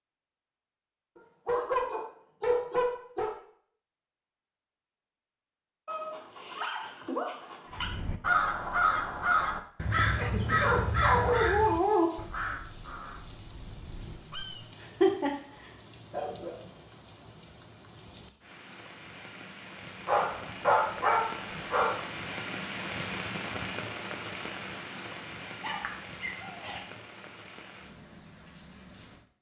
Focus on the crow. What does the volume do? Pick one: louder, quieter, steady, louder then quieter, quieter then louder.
quieter.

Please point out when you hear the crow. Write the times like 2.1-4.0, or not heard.
7.7-14.7.